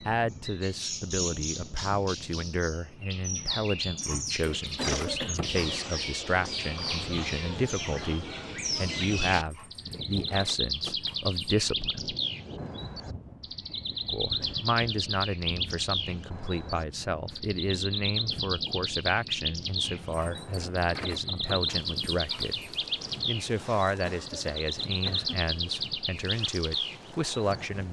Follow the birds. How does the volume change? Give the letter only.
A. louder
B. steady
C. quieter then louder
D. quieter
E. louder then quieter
B.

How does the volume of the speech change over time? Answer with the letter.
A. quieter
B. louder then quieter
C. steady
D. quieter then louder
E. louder
C.